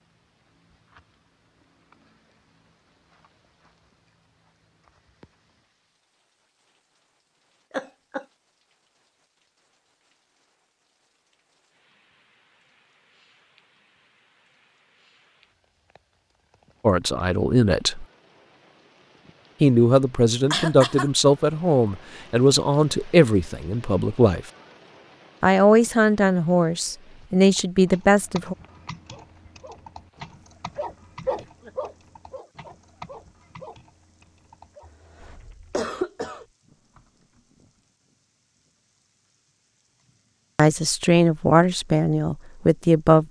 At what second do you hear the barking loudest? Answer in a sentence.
The volume of the barking peaks at 31 seconds.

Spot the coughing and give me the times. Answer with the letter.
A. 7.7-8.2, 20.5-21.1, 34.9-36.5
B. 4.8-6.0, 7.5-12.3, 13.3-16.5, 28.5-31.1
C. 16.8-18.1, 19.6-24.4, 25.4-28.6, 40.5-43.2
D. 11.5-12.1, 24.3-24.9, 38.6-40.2
A.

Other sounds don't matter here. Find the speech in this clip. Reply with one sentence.
You can hear the speech from 16.8 to 18.1 s, from 19.6 to 24.4 s, from 25.4 to 28.6 s and from 40.5 to 43.2 s.